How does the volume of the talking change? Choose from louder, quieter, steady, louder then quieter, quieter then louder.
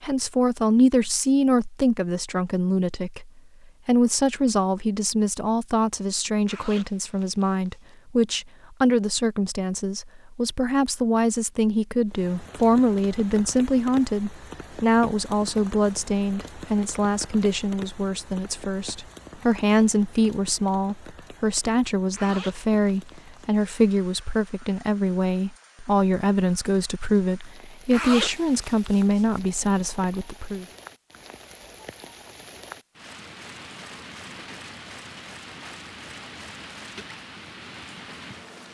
steady.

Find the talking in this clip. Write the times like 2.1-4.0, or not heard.
0.0-30.6.